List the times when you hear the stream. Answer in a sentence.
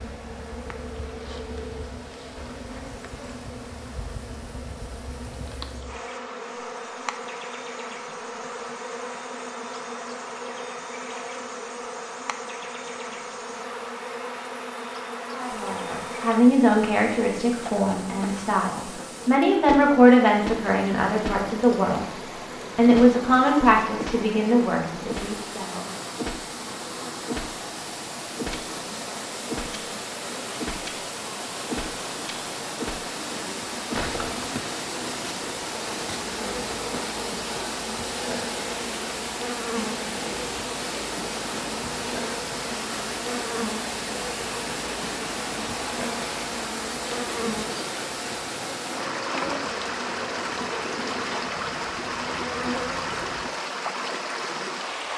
You can hear the stream from 0.0 to 55.1 s.